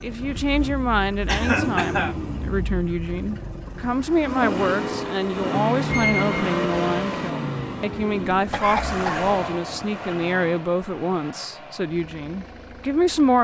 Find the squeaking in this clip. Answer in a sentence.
You can hear the squeaking from 5.8 to 7.3 s.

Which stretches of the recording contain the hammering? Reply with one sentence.
You can't hear the hammering here.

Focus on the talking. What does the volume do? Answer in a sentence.
The volume of the talking stays about the same.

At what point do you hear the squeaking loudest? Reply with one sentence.
The loudest moment of the squeaking is at 6 seconds.